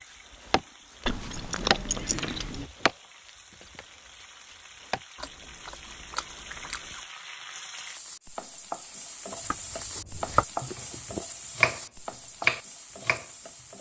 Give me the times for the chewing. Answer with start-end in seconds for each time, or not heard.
1.1-2.6, 5.2-7.0, 9.3-11.2.